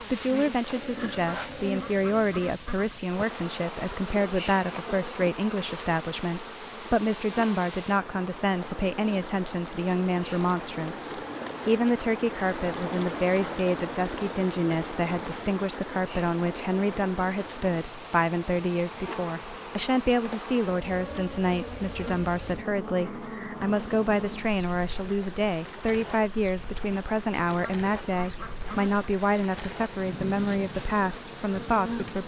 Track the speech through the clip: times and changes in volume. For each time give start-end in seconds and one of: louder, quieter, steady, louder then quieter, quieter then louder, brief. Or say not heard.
0.0-32.2 steady.